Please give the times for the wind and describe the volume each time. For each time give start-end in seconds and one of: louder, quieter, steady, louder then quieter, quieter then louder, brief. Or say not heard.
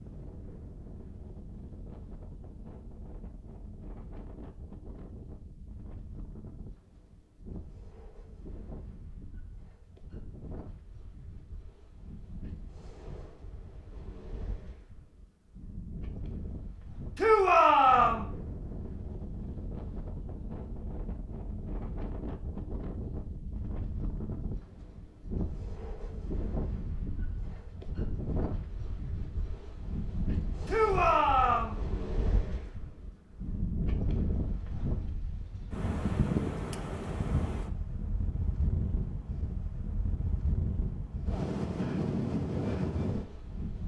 0.0-43.8 louder.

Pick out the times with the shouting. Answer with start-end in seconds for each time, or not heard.
17.1-18.2, 30.6-31.8.